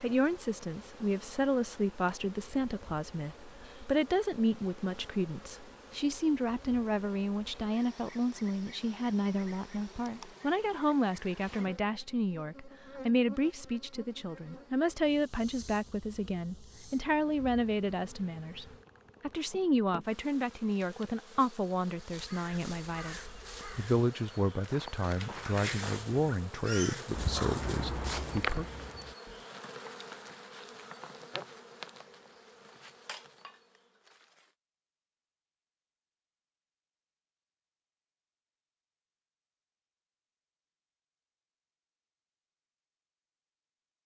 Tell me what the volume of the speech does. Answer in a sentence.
The loudness of the speech stays about the same.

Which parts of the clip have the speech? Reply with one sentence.
The speech can be heard from 0.0 to 28.6 s.